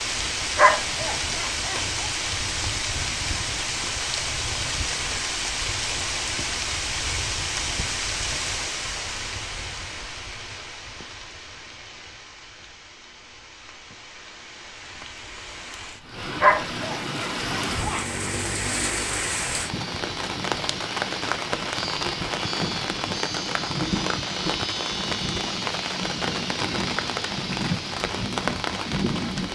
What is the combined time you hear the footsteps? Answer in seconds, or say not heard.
not heard.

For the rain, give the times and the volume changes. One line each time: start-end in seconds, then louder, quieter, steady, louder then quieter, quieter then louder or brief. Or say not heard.
0.0-29.4 quieter then louder.